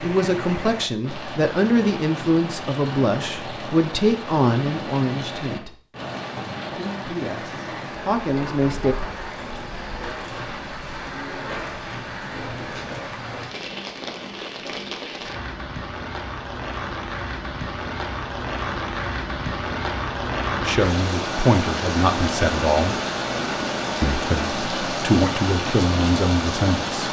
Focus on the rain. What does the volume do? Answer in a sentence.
The loudness of the rain goes up.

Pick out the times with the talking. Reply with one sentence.
You can hear the talking from 0.0 to 5.8 s, from 6.7 to 8.9 s, from 20.6 to 22.9 s and from 24.0 to 27.0 s.